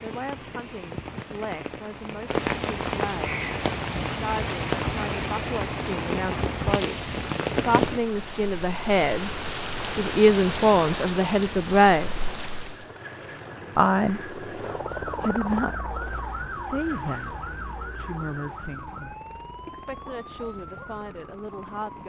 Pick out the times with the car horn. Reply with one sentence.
The car horn can't be heard in this clip.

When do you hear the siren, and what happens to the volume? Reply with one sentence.
You can hear the siren from 14.6 to 22.0 s, getting quieter.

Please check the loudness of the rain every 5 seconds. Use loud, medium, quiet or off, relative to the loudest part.
loud, loud, loud, off, off.